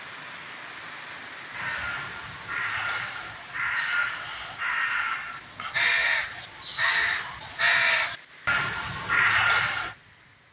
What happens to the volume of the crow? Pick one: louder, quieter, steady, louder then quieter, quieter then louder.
louder.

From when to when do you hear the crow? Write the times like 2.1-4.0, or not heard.
1.5-9.9.